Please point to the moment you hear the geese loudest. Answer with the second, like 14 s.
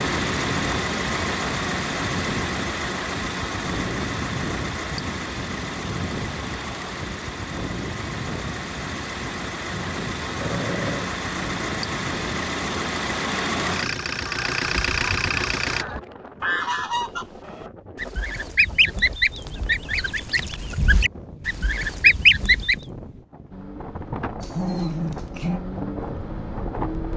22 s.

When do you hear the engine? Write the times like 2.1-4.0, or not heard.
0.0-15.8, 23.5-27.1.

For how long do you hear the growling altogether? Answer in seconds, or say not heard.
2 s.